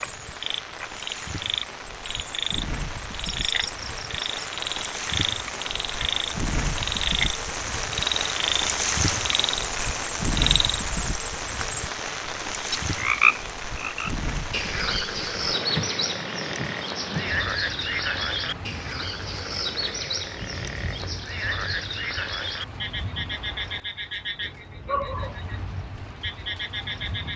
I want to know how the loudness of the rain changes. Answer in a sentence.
The volume of the rain goes up, then down.